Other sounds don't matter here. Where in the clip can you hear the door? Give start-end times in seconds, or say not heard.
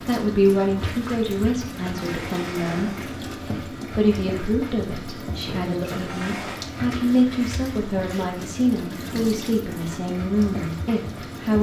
1.8-3.4, 5.8-6.7.